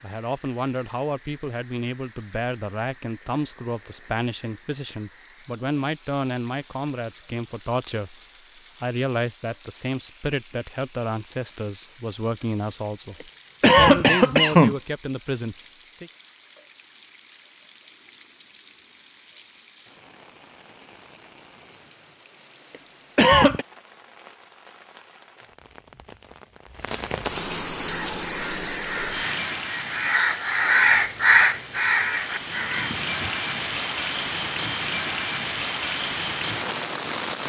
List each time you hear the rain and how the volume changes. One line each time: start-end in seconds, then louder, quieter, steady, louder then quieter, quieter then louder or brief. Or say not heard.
0.0-37.4 louder.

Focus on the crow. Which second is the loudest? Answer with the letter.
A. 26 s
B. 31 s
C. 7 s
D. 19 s
B.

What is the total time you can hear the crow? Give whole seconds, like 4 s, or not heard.
5 s.